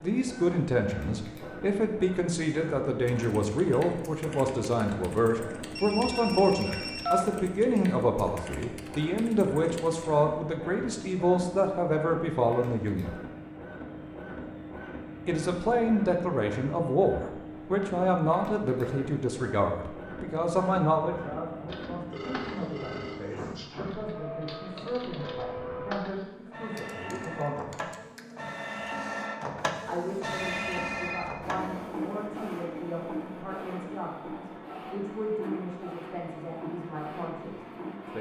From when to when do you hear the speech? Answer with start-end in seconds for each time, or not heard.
0.0-13.2, 15.2-27.8, 29.9-38.1.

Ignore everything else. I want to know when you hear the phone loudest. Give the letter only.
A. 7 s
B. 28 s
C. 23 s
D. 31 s
A.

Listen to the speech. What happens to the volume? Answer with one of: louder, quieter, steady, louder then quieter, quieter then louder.
quieter.